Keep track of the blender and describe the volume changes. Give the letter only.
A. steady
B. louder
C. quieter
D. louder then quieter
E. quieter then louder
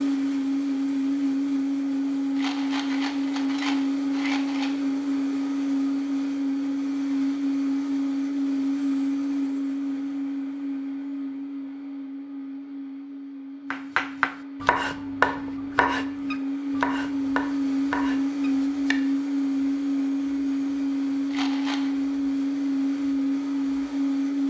E.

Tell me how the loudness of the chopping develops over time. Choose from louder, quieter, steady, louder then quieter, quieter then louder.
quieter.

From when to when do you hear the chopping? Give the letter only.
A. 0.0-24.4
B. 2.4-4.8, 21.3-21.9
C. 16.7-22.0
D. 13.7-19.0
D.